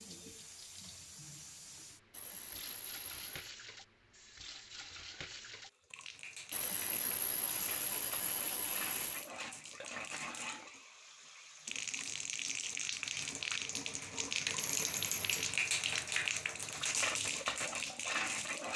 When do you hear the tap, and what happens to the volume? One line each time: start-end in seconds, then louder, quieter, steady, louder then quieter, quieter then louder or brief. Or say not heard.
0.0-18.7 louder.